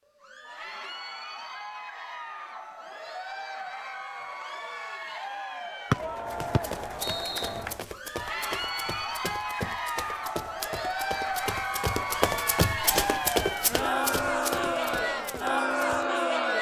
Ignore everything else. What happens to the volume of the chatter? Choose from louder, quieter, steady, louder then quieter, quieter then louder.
louder.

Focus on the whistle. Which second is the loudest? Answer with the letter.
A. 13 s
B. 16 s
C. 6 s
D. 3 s
C.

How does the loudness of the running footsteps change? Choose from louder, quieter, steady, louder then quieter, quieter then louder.
louder then quieter.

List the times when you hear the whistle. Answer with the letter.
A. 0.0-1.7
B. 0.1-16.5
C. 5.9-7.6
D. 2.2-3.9
C.